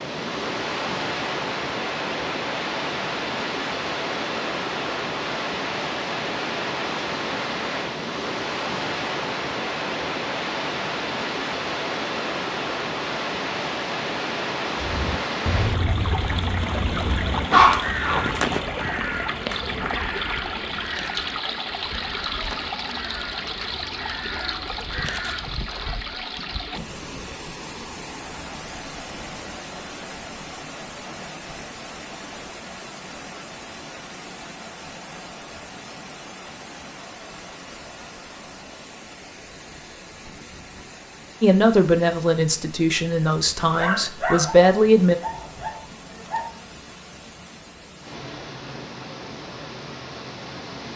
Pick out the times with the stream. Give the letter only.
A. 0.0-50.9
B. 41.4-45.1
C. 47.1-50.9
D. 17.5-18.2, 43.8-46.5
A.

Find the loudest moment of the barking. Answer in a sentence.
The volume of the barking peaks at 18 seconds.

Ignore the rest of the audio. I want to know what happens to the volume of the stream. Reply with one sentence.
The loudness of the stream goes down.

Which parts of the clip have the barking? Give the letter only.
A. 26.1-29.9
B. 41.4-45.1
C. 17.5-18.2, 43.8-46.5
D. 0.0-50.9
C.